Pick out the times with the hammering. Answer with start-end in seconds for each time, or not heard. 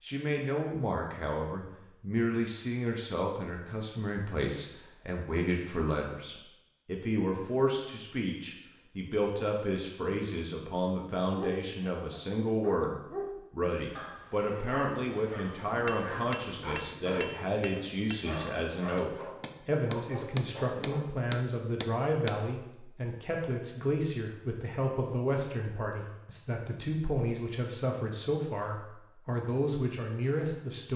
15.7-22.4.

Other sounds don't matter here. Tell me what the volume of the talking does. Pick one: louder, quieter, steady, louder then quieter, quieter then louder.
steady.